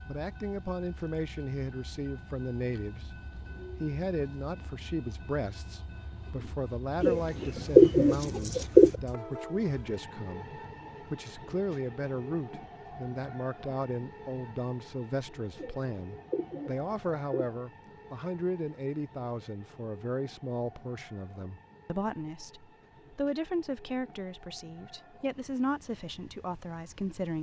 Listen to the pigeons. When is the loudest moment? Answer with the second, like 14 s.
8 s.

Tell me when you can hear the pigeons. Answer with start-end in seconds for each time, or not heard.
7.0-8.9, 15.6-17.6.